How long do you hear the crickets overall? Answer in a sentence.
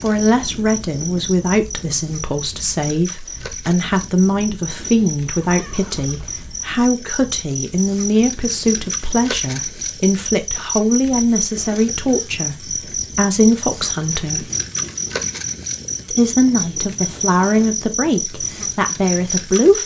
You can hear the crickets for 20 seconds altogether.